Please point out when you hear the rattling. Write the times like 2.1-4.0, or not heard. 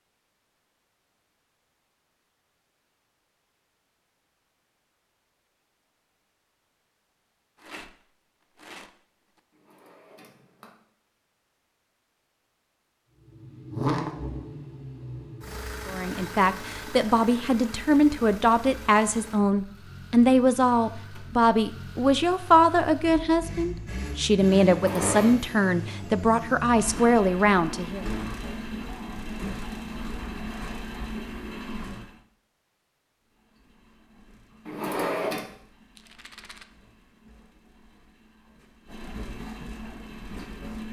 7.5-9.4, 36.0-36.6.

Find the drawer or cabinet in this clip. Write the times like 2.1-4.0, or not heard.
9.6-10.8, 24.6-25.3, 34.6-35.5.